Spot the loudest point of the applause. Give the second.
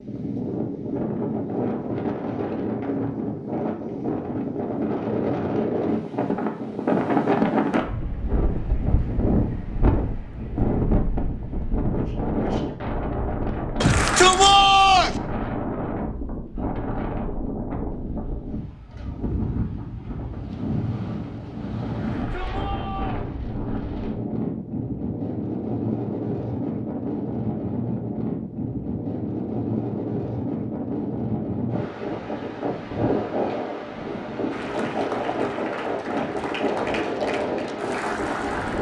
38 s.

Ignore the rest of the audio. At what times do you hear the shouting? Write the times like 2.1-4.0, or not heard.
13.8-15.2, 21.9-23.2.